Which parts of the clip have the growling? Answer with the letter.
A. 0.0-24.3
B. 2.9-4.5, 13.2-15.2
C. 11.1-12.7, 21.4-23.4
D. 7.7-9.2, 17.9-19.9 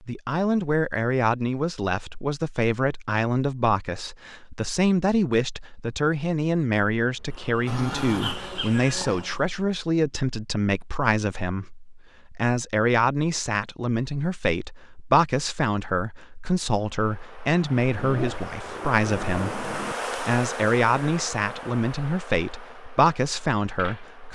D.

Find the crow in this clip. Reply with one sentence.
The crow can't be heard in this clip.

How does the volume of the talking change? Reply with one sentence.
The loudness of the talking stays about the same.